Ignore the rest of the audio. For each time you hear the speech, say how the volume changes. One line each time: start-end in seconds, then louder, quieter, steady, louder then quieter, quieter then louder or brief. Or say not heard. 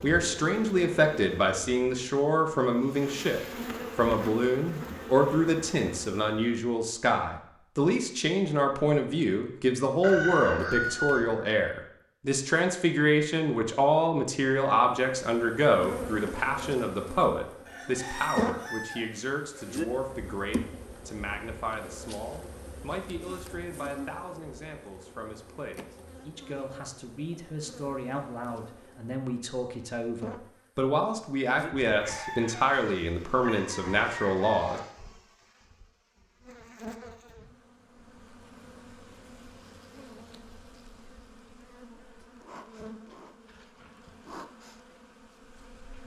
0.0-34.8 quieter then louder.